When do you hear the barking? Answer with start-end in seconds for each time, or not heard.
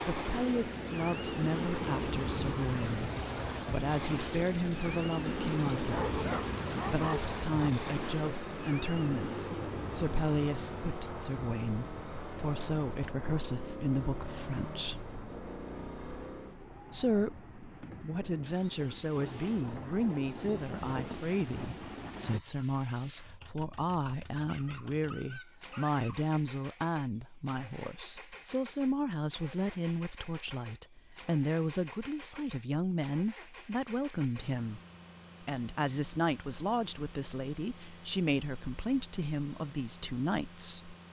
5.8-7.7, 24.4-26.2.